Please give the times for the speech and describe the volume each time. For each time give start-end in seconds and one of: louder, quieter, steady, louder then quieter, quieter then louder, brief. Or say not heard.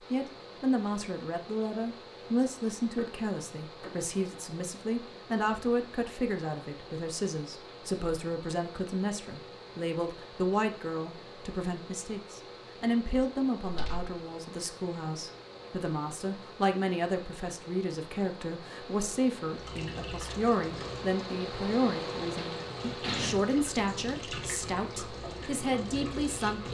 0.1-26.7 steady.